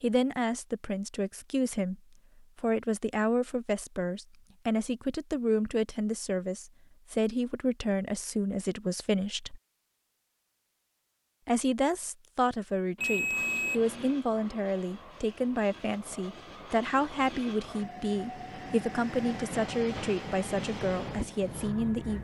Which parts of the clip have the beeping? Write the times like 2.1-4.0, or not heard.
12.9-14.2.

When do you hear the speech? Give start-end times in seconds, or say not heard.
0.0-1.9, 2.5-9.6, 11.4-22.2.